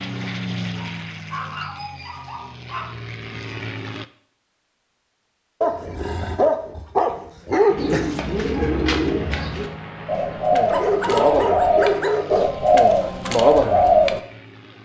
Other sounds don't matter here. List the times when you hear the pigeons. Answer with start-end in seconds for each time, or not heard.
7.8-14.2.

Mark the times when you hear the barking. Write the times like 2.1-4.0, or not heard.
0.8-2.9, 5.6-8.2, 10.7-12.5.